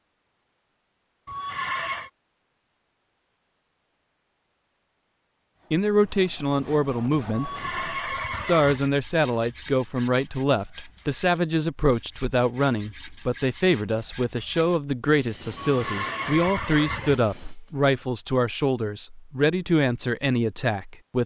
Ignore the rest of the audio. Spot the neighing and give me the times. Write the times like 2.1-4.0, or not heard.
1.2-2.1, 7.3-8.9, 15.6-17.2.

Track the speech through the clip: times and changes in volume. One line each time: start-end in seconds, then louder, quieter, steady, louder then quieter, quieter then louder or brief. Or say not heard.
5.7-21.2 steady.